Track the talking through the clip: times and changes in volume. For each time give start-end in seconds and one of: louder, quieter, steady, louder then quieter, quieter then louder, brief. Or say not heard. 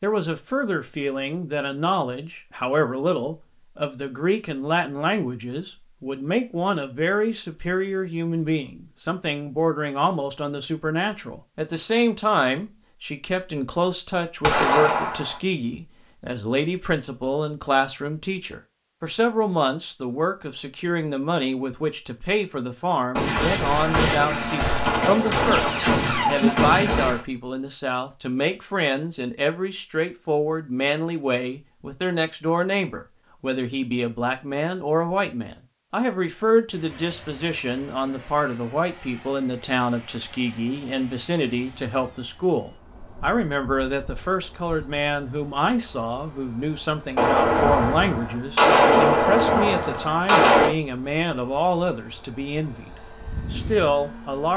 0.0-52.9 steady
53.5-54.5 brief.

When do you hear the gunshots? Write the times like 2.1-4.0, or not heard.
14.4-15.3, 23.1-27.2, 47.1-50.7.